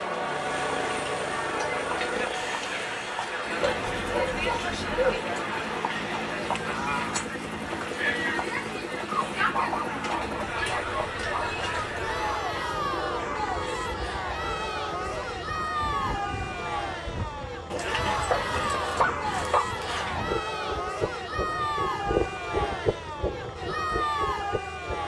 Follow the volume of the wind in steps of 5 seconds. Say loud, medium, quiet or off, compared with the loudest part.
off, off, medium, medium, loud.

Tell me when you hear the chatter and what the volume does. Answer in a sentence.
You can hear the chatter from 0.0 to 25.0 s, at a steady volume.